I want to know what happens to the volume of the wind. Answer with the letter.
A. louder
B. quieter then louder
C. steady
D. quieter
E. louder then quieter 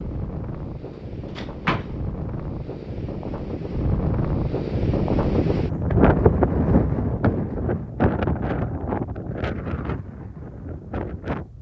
E.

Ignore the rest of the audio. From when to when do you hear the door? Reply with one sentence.
The door can be heard from 1.4 to 1.9 s.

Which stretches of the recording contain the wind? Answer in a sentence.
The wind can be heard from 0.0 to 11.5 s.